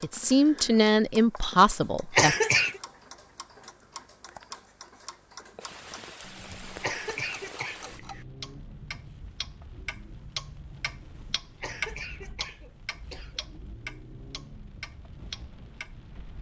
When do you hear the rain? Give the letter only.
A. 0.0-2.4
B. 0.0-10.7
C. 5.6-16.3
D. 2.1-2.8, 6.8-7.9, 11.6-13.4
C.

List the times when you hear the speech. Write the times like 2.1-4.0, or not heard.
0.0-2.4.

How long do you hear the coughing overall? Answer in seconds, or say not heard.
4 s.